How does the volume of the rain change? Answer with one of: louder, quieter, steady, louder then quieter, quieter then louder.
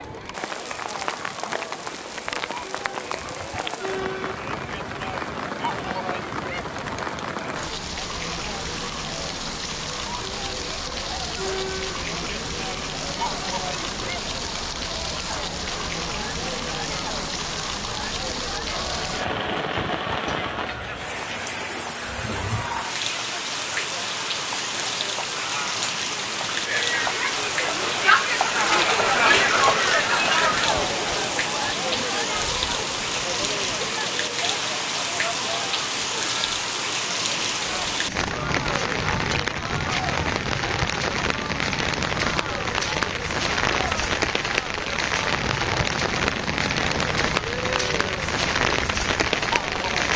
louder.